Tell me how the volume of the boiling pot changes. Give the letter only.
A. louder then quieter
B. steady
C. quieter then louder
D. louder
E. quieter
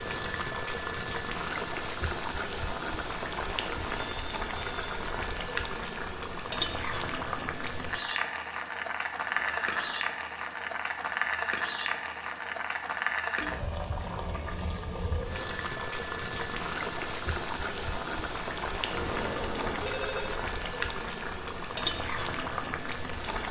B.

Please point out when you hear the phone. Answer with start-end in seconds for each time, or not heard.
4.0-5.0, 9.2-9.9, 18.9-20.4.